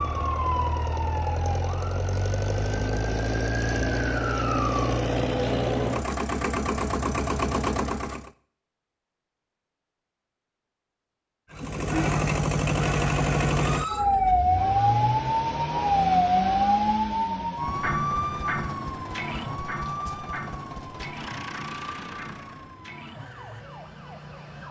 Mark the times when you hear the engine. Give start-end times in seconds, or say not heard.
0.0-8.3, 11.5-22.8.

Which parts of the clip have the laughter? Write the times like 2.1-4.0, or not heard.
11.5-12.1.